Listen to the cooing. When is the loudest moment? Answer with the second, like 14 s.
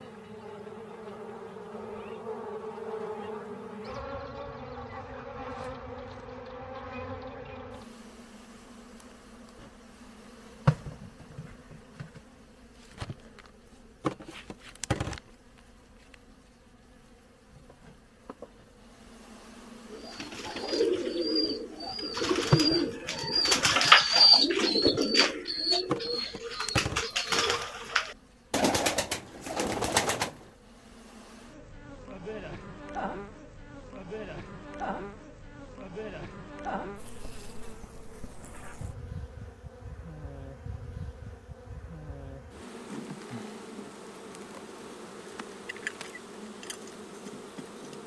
24 s.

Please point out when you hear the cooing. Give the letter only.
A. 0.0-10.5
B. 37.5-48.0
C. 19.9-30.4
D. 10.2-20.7
C.